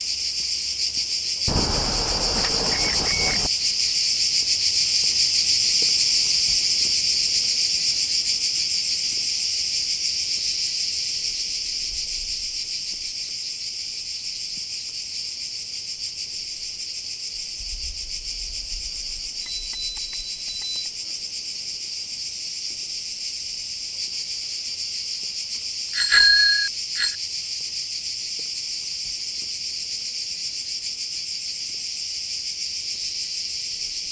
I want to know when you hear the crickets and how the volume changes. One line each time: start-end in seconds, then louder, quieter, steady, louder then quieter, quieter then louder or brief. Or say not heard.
0.0-34.0 quieter.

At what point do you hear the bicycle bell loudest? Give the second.
26 s.